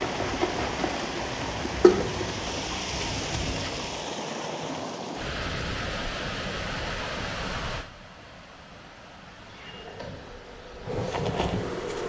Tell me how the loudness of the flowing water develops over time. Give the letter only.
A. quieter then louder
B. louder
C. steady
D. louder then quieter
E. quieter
E.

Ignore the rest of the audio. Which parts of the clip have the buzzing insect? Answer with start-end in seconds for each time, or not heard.
0.0-4.0, 9.3-12.0.